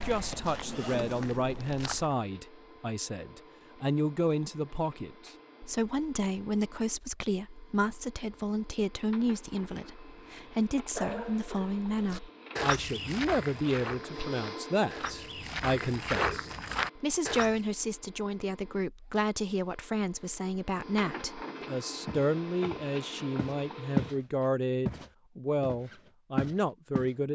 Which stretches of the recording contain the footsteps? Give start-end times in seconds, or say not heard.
0.0-2.1, 11.9-17.6, 22.1-27.1.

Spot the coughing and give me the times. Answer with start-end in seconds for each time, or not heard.
10.9-12.0.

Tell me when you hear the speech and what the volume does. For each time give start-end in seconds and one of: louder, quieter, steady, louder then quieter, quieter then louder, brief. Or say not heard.
0.0-27.2 steady.